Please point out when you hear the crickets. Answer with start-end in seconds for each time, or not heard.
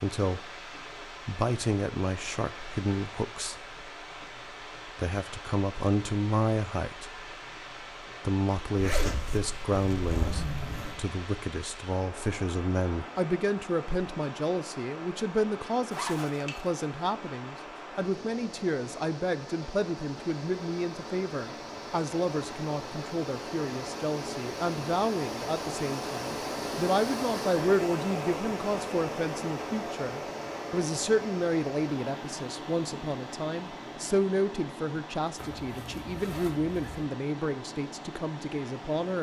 not heard.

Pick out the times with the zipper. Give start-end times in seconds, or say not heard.
8.8-11.0, 15.9-16.8, 35.4-37.0.